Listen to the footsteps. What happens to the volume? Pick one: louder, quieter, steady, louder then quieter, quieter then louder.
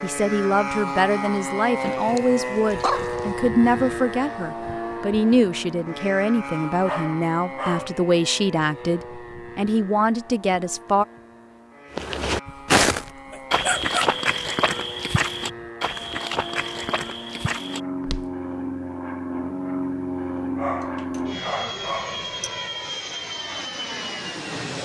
quieter.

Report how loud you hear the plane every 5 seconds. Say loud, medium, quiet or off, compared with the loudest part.
loud, medium, quiet, loud, loud.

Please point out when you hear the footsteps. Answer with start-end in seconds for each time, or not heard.
11.9-18.3.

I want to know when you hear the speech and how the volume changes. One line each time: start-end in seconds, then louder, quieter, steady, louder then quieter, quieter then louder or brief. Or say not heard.
0.0-11.1 steady.